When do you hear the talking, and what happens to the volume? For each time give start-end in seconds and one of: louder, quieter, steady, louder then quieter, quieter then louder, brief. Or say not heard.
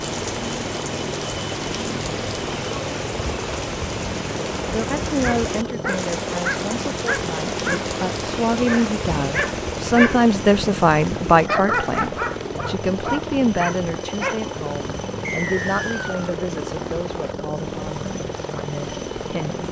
4.7-19.6 louder then quieter.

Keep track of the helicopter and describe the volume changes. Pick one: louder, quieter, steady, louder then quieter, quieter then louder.
steady.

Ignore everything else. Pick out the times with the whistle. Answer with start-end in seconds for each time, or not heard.
15.2-16.4.